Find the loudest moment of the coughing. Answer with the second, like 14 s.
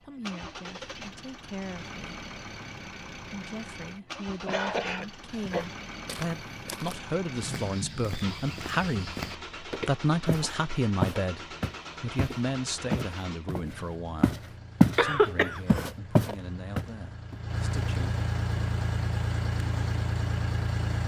15 s.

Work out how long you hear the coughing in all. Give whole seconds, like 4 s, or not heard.
2 s.